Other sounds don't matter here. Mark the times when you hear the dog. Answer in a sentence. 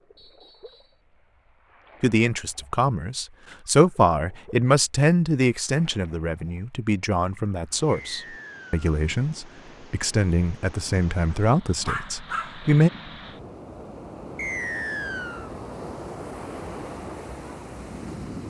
The dog can be heard from 11.3 to 12.7 s.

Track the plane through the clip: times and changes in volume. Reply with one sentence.
You can't hear the plane here.